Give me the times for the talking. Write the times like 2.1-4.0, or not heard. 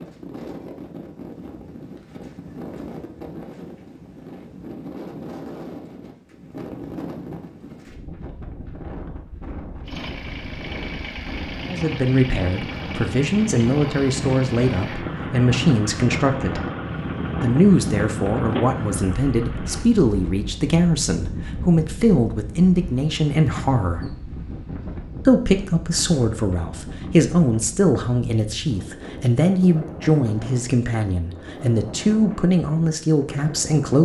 11.7-16.6, 17.4-24.1, 25.2-34.0.